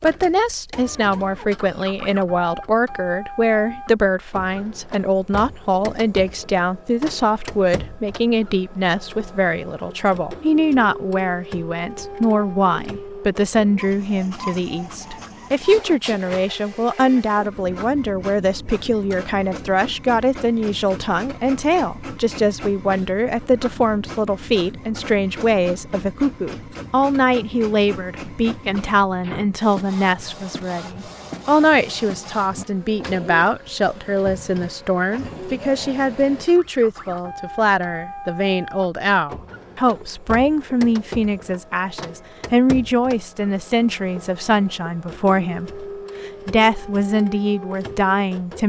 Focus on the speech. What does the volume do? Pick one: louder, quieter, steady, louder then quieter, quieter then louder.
steady.